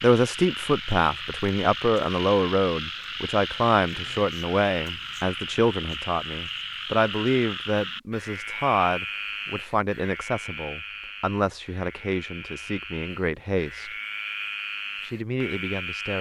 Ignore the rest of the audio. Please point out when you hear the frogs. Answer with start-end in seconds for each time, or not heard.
0.0-16.1.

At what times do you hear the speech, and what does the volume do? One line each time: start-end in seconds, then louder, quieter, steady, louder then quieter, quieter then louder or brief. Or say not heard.
0.0-13.9 quieter
15.0-16.1 brief.